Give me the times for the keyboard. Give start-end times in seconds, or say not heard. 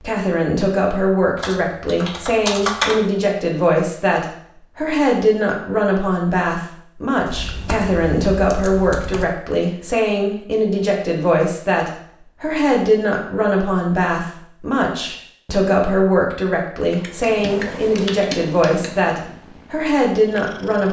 1.4-3.0, 7.2-9.2, 16.9-18.9.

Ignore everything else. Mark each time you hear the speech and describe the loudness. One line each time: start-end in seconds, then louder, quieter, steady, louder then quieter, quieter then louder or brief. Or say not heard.
0.0-20.8 steady.